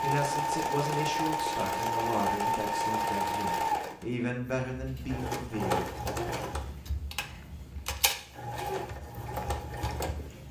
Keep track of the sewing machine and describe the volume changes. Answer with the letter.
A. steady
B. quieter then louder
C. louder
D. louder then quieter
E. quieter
E.